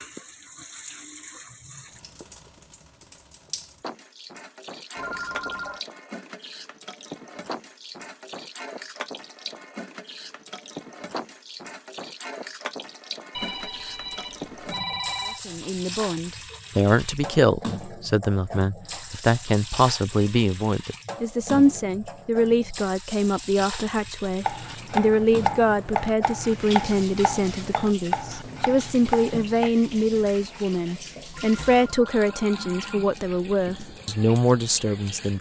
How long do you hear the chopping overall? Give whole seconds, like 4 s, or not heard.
5 s.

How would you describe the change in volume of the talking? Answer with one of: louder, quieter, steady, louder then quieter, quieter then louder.
steady.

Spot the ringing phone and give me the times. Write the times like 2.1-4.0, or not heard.
5.0-5.8, 13.3-15.4, 31.3-33.1.